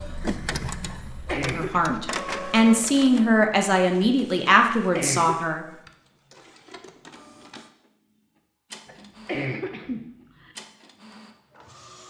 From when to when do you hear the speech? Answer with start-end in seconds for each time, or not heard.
1.4-5.7.